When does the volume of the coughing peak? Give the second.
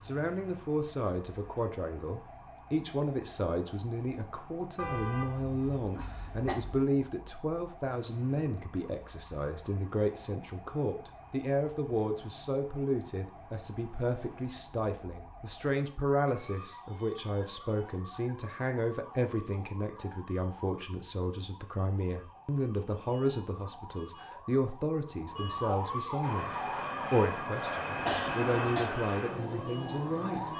28 s.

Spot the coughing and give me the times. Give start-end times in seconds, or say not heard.
6.0-6.5, 28.0-28.9.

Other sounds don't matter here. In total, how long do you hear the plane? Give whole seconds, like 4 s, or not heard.
4 s.